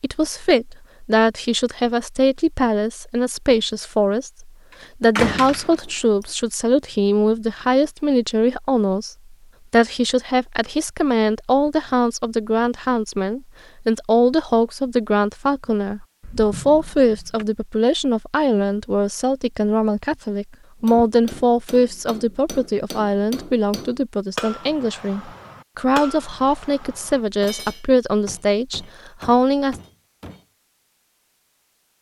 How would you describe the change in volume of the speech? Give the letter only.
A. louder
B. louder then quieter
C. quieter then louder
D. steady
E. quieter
D.